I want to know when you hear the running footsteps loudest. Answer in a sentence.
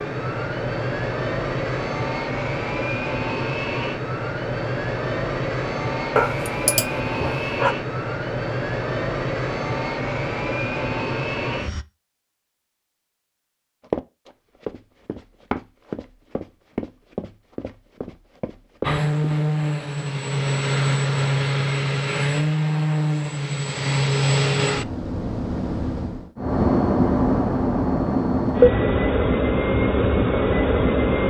The volume of the running footsteps peaks at 14 seconds.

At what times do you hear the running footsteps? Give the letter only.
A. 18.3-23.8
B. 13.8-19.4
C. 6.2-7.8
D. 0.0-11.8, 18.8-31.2
B.